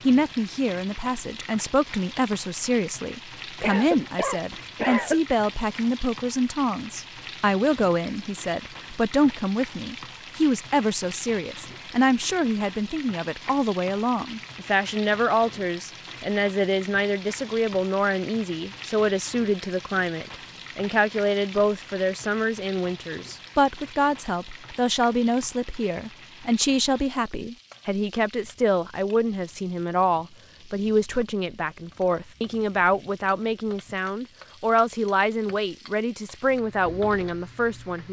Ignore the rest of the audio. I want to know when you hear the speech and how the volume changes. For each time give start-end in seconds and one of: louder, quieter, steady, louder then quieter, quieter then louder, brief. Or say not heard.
0.1-38.0 steady.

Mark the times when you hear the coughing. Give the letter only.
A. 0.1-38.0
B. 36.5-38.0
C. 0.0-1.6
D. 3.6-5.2
D.